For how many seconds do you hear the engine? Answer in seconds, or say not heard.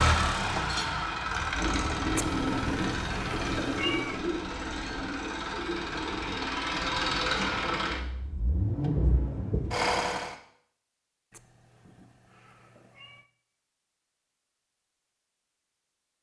10 s.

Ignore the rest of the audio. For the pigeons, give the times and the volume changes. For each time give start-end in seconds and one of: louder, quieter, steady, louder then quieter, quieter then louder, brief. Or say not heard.
1.5-8.1 quieter.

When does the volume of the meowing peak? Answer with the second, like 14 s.
4 s.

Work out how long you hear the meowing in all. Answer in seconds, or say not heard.
4 s.